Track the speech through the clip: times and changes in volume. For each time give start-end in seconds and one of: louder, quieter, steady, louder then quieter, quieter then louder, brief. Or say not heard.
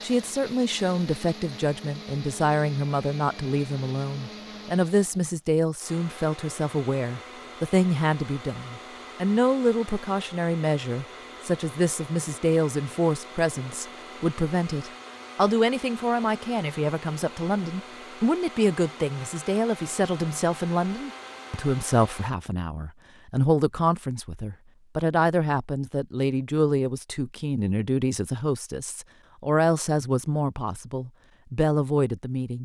0.0-32.5 steady.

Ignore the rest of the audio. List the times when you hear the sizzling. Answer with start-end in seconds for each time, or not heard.
not heard.